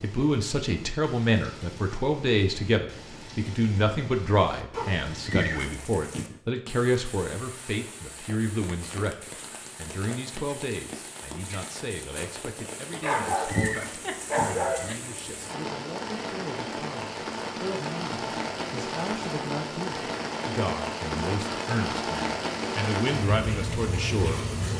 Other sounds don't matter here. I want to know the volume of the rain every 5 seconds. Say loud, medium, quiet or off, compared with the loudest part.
quiet, quiet, medium, loud, loud.